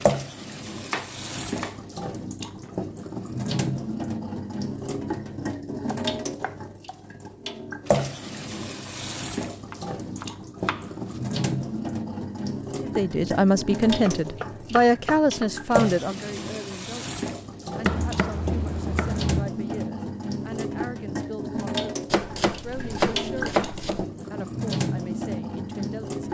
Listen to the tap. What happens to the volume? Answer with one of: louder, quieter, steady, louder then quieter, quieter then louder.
steady.